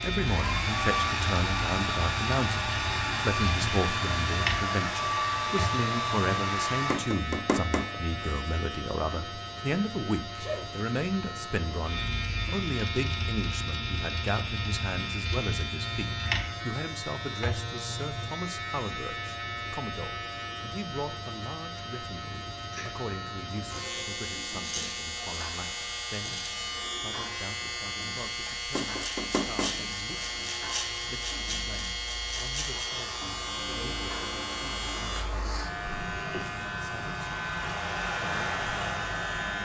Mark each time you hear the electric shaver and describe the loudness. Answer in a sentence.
The electric shaver can be heard from 0.0 to 39.6 s, at a steady volume.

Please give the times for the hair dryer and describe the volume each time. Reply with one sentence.
You can hear the hair dryer from 0.1 to 7.0 s, at a steady volume; and from 32.5 to 39.6 s, getting louder.